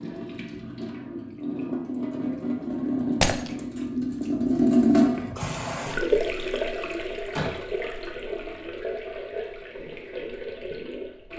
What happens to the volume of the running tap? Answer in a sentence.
The volume of the running tap goes up, then down.